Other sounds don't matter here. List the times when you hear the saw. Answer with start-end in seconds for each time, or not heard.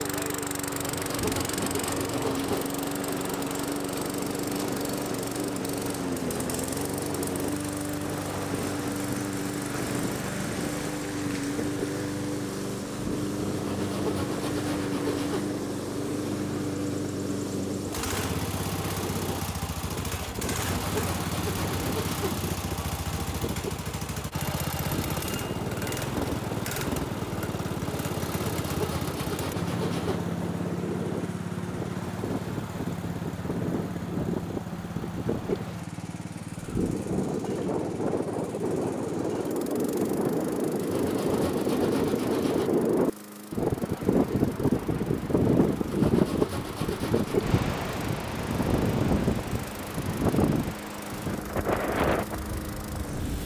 0.7-2.6, 13.5-15.4, 20.4-22.4, 28.4-30.2, 40.8-42.7, 45.9-47.5.